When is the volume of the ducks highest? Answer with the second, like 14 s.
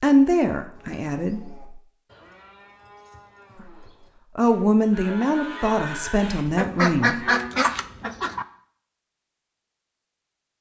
7 s.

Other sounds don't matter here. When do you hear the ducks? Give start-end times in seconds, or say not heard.
6.5-8.4.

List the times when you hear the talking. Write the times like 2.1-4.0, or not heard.
0.0-1.8, 3.5-7.2.